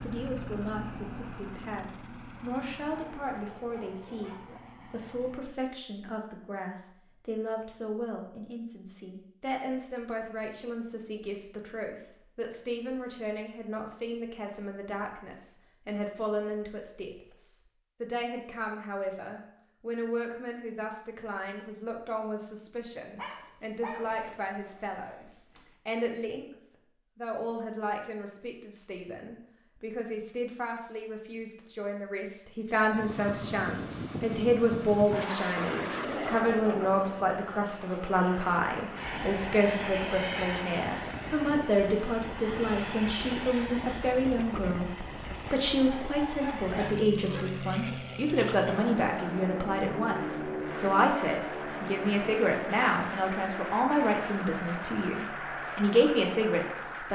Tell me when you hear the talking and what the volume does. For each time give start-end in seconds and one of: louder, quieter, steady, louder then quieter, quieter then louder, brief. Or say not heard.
0.0-57.1 louder.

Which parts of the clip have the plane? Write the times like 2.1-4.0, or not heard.
0.0-5.6, 32.9-57.1.